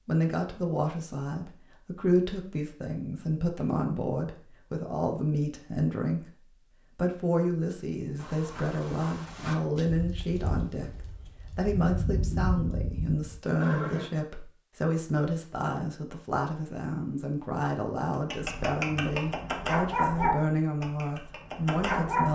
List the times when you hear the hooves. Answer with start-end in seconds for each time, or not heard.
8.2-14.1.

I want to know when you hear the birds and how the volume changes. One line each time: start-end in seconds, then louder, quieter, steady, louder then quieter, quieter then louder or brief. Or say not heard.
not heard.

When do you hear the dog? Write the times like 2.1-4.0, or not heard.
18.3-22.3.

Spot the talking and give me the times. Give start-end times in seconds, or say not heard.
0.1-6.3, 7.0-22.3.